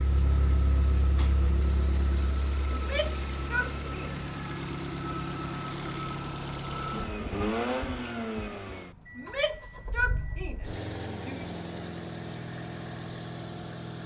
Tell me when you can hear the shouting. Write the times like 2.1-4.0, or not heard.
2.7-4.2, 9.2-11.5.